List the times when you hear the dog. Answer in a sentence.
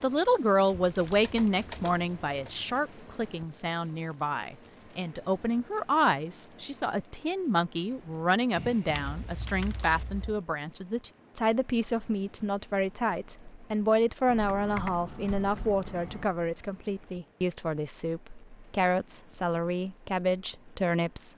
You can't hear the dog here.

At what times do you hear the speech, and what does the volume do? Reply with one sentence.
The speech can be heard from 0.0 to 21.3 s, at a steady volume.